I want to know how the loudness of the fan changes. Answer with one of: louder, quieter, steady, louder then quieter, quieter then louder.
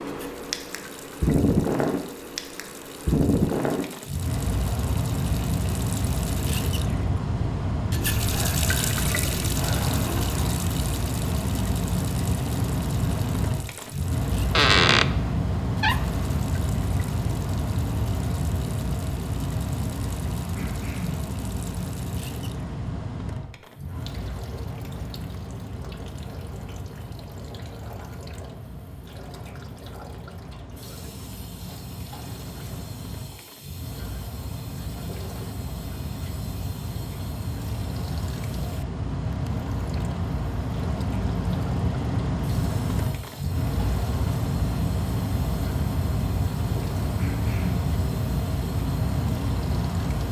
quieter then louder.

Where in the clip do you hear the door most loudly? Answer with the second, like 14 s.
15 s.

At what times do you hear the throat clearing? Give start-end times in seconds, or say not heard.
8.3-10.6, 20.6-21.2, 47.1-47.8.